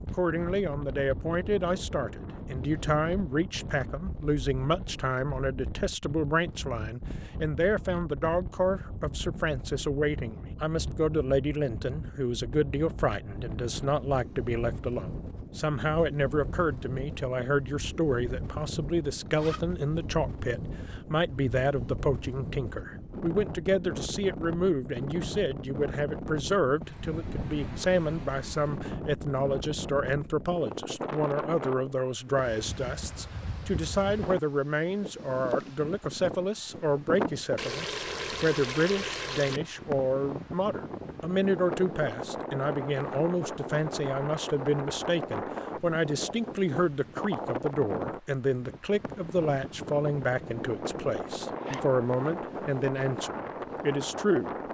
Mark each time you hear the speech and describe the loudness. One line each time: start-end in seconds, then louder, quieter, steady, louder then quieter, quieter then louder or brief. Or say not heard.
0.0-54.5 steady.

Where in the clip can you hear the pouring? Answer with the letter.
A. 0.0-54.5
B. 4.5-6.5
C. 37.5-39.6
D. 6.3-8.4
C.